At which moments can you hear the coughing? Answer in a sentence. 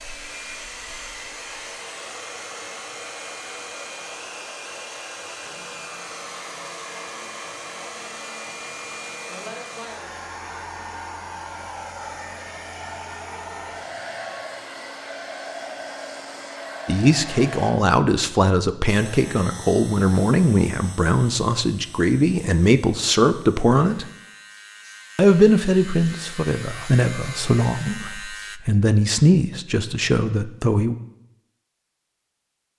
You can't hear the coughing here.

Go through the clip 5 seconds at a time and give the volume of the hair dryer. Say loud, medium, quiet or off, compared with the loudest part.
loud, loud, loud, loud, off, off, off.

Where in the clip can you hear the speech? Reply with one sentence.
You can hear the speech from 16.9 to 24.1 s and from 25.1 to 30.9 s.